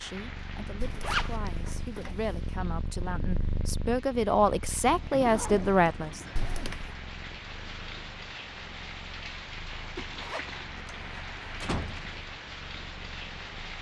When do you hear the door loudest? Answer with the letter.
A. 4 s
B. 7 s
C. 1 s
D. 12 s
D.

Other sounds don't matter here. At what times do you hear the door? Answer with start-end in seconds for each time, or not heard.
0.8-2.4, 6.3-7.0, 10.8-12.2.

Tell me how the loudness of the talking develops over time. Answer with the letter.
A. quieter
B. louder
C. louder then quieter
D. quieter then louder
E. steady
B.